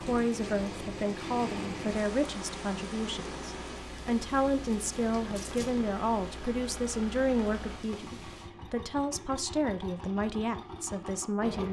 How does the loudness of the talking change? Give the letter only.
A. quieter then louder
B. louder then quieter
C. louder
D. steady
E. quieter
D.